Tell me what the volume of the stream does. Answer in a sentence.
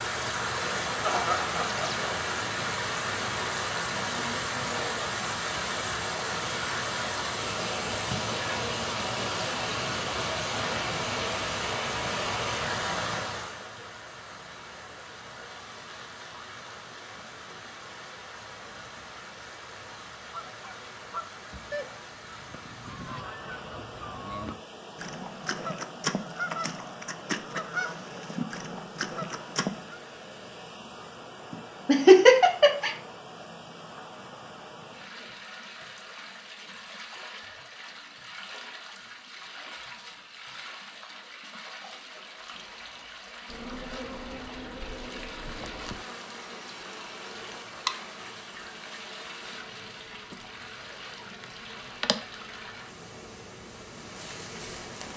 The volume of the stream goes down.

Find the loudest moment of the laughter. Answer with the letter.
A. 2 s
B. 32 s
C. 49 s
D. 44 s
B.